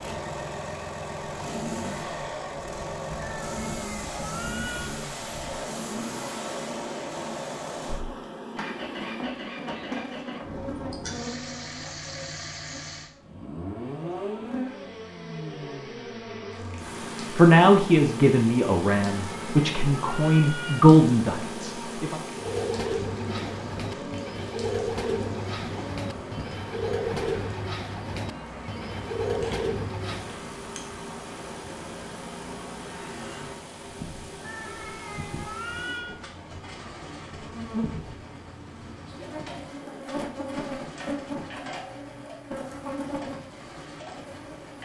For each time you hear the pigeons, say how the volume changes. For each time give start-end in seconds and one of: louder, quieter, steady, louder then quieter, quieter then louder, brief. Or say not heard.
22.4-30.4 steady.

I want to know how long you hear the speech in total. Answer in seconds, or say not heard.
5 s.